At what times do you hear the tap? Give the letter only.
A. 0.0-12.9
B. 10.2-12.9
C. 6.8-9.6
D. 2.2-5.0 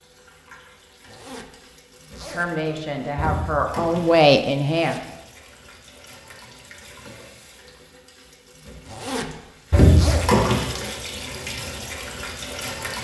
A.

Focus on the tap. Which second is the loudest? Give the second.
10 s.